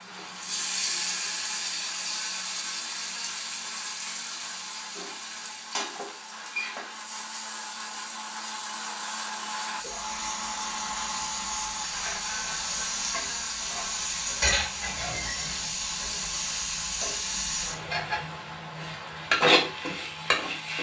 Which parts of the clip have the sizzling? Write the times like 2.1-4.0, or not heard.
0.0-20.7.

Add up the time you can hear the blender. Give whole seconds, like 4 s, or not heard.
21 s.